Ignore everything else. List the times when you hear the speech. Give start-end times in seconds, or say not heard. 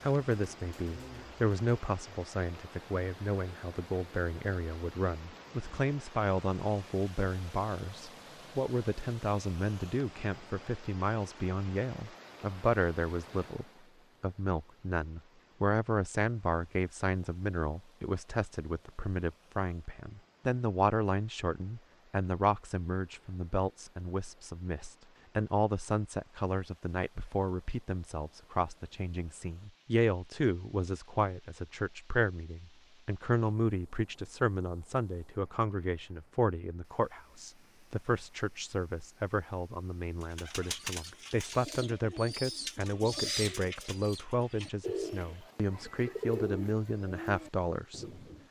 0.0-48.2.